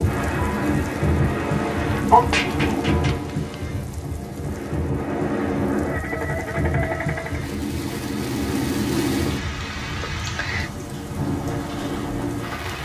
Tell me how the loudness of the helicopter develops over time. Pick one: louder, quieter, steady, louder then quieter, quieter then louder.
quieter then louder.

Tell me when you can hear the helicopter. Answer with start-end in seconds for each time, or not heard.
0.0-7.5.